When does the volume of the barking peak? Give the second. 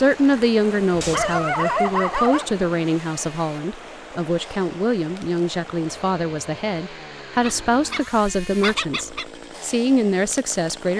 2 s.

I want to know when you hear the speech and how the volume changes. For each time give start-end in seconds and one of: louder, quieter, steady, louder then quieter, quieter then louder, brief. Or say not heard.
0.0-10.9 steady.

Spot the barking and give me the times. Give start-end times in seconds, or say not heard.
0.9-2.5, 7.4-9.2.